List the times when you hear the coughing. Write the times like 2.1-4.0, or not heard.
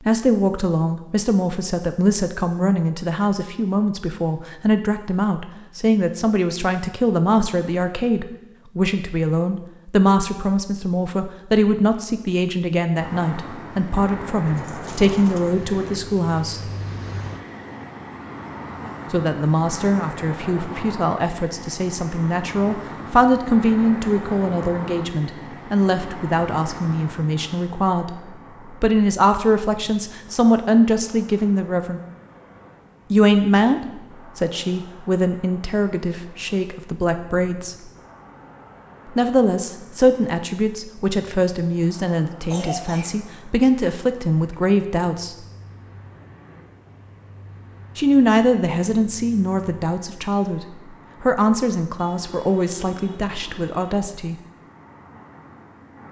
42.5-43.2.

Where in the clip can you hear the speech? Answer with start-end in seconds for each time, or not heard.
0.1-16.6, 19.1-32.0, 33.1-37.8, 39.1-45.5, 48.0-54.4.